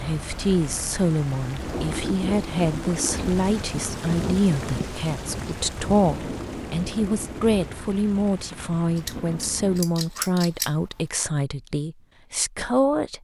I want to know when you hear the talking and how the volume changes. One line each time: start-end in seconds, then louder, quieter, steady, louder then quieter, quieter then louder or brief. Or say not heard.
0.0-13.1 steady.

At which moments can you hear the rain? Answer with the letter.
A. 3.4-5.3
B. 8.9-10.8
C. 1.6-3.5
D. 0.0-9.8
D.